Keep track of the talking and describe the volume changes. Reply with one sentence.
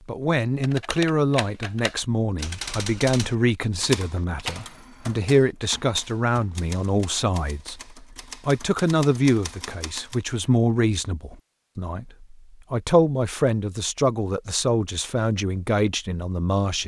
The volume of the talking stays about the same.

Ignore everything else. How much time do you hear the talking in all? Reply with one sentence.
You can hear the talking for 17 seconds altogether.